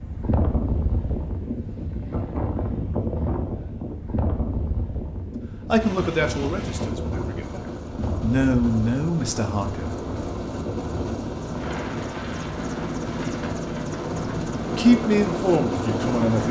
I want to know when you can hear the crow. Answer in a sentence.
The crow can't be heard in this clip.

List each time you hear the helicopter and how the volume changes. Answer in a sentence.
The helicopter can be heard from 5.8 to 16.4 s, getting louder.